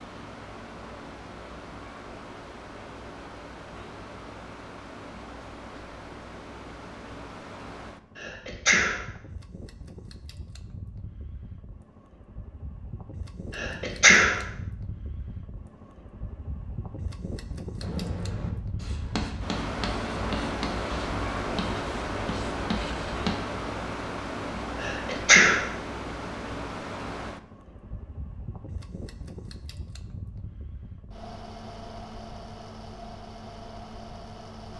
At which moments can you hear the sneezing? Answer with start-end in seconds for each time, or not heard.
8.2-9.1, 13.6-14.4, 24.8-25.6.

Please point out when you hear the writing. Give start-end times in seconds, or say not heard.
17.8-23.3.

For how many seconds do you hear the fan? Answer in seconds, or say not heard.
35 s.